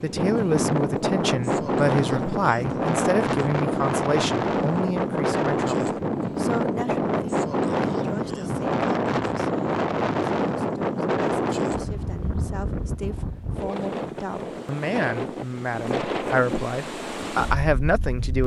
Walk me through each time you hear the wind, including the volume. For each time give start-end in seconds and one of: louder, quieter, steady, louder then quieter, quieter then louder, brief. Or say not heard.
0.0-18.4 quieter.